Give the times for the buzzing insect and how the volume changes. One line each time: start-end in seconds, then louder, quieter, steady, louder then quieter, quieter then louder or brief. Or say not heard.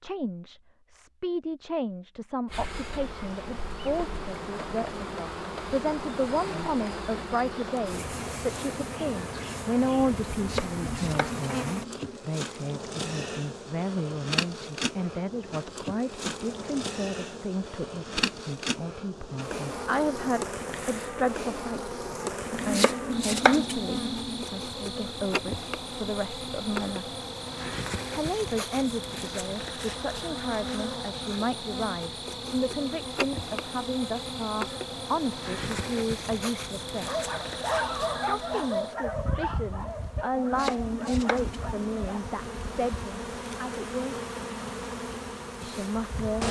2.5-46.4 steady.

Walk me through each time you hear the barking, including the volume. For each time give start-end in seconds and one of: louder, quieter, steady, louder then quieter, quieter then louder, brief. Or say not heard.
37.0-42.2 quieter.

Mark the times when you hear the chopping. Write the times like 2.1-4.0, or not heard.
10.3-12.2, 22.5-24.4, 40.4-42.0.